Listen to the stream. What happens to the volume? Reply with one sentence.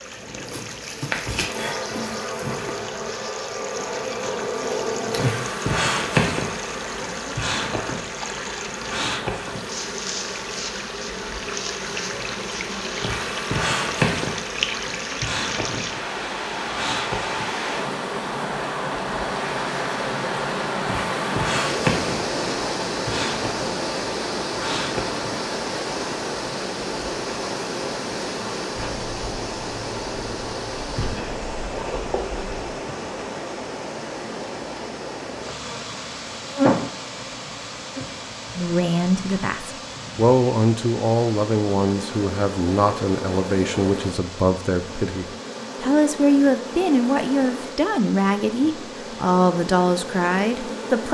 The loudness of the stream goes up, then down.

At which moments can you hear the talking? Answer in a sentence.
The talking can be heard from 38.5 to 51.0 s.